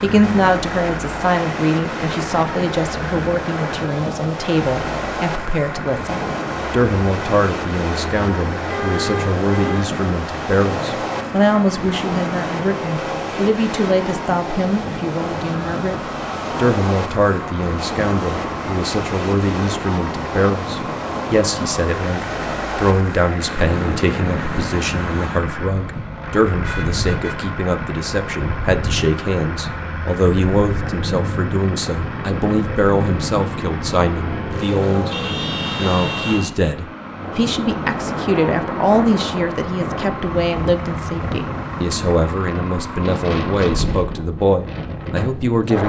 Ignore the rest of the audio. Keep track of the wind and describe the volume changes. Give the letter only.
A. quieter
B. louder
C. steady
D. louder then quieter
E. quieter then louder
C.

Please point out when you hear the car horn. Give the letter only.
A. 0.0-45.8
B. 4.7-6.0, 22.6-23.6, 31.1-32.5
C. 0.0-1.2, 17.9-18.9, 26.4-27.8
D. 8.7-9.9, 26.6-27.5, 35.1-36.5
D.